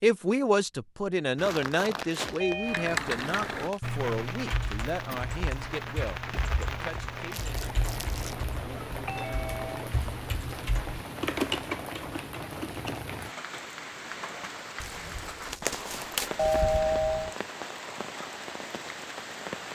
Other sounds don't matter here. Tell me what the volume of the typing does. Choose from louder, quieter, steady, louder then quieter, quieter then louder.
quieter then louder.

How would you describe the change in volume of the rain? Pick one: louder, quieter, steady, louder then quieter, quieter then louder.
steady.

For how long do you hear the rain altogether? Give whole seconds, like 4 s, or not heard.
16 s.